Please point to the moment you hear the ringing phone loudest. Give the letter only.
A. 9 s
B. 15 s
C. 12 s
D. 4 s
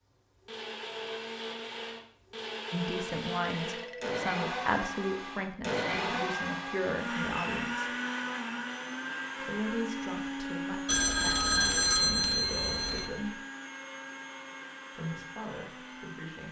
C.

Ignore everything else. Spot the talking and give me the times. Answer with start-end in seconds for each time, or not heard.
2.7-7.9, 9.4-13.4, 14.9-16.4.